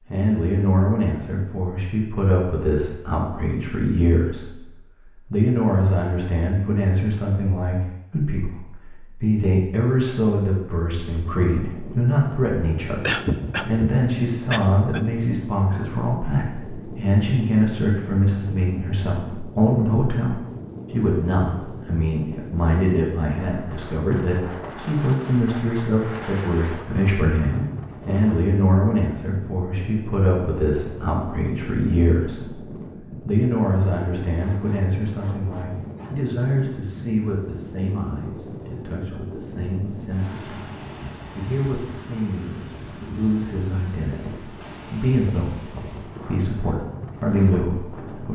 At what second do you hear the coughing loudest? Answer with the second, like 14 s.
13 s.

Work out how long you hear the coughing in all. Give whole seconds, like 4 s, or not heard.
2 s.